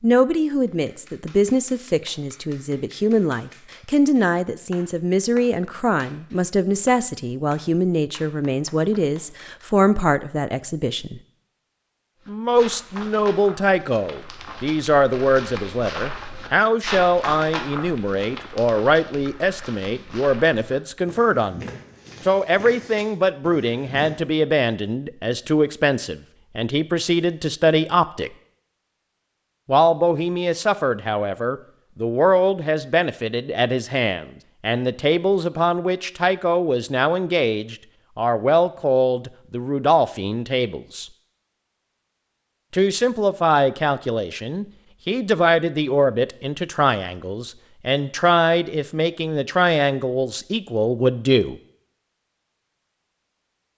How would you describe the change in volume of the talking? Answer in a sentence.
The loudness of the talking stays about the same.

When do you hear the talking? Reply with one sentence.
You can hear the talking from 0.0 to 11.2 s, from 12.2 to 28.3 s, from 29.6 to 41.0 s and from 42.7 to 51.5 s.